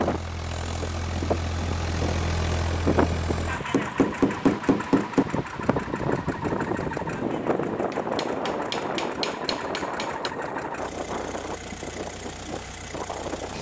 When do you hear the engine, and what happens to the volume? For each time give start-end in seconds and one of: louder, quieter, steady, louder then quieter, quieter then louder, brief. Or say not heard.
0.0-13.5 quieter.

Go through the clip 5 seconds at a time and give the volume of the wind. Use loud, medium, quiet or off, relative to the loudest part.
loud, loud, medium.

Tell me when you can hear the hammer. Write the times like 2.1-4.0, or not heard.
3.7-5.2, 7.9-10.3.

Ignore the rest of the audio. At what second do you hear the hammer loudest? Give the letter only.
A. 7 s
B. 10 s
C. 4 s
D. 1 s
C.